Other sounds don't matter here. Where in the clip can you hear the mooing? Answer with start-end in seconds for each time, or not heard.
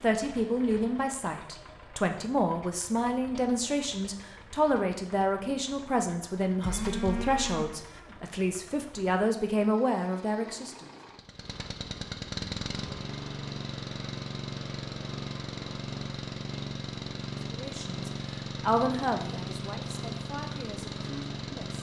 6.6-8.2.